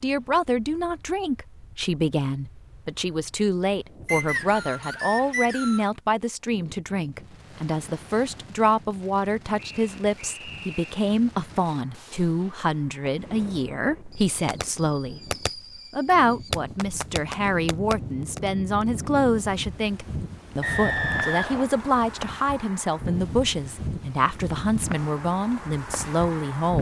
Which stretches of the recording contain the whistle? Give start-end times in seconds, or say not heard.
4.0-5.9, 9.6-10.9, 20.6-21.7.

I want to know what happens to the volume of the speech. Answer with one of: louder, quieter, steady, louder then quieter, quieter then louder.
steady.